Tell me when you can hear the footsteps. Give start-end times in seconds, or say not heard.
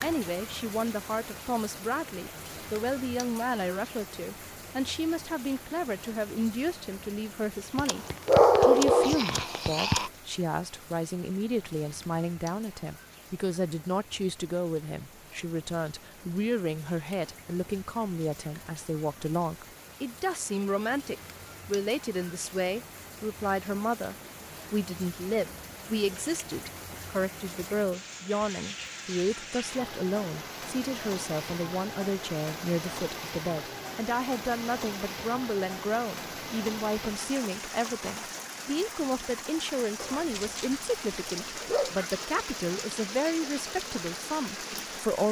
not heard.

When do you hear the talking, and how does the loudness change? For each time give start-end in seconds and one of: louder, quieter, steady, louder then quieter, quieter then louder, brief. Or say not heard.
0.0-45.2 steady.